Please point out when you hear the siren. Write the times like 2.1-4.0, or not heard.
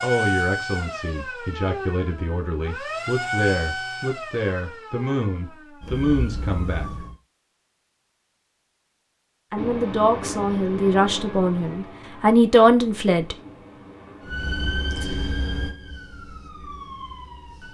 0.0-7.2, 14.2-17.6.